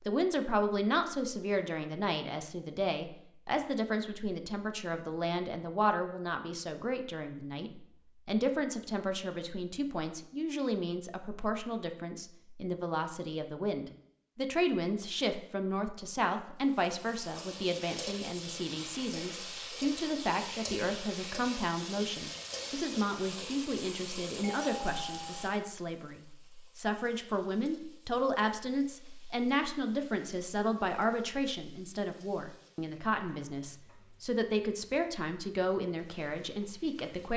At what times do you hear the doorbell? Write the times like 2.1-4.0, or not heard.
24.4-25.8.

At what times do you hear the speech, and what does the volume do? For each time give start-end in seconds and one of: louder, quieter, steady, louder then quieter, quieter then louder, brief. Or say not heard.
0.0-37.3 steady.